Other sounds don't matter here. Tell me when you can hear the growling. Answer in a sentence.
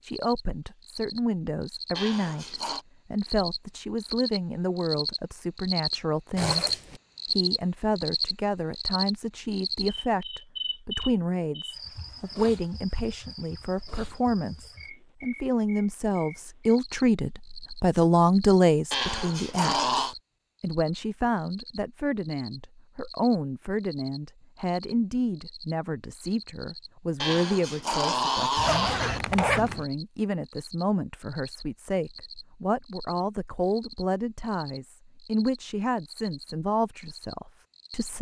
You can hear the growling from 1.9 to 2.9 s, from 18.9 to 20.1 s and from 27.2 to 29.2 s.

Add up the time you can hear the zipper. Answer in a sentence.
You can hear the zipper for 2 seconds altogether.